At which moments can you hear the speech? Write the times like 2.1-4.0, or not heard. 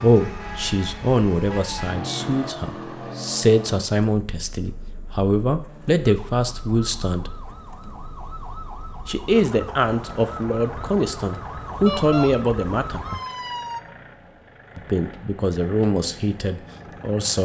0.0-7.3, 9.1-13.0, 14.8-17.4.